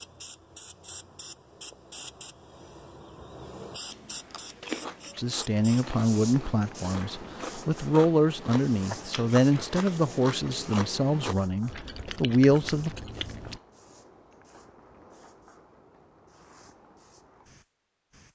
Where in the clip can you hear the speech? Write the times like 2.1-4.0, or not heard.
5.2-12.9.